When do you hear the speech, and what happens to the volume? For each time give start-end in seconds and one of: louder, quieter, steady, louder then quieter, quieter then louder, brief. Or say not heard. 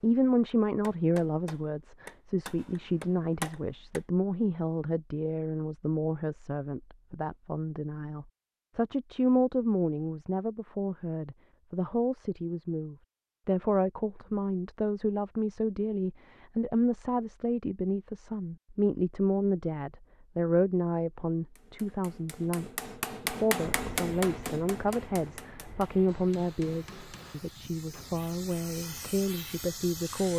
0.0-30.3 steady.